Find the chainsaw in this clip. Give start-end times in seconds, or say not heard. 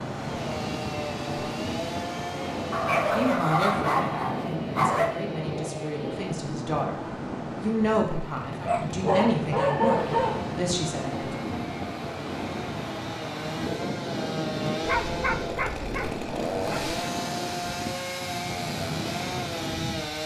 0.0-6.4, 8.0-20.2.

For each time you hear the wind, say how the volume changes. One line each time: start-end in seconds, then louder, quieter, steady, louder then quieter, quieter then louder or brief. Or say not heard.
0.0-20.2 steady.